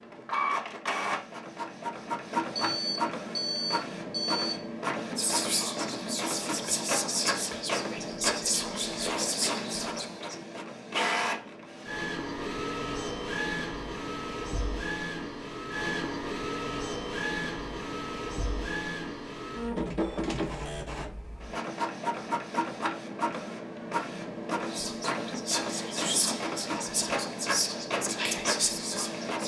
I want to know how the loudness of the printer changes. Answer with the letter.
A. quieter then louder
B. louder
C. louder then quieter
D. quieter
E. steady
E.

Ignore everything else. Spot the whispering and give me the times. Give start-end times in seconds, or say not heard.
5.2-10.3, 24.7-29.4.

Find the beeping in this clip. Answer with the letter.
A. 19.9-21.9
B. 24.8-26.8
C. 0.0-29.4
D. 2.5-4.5
D.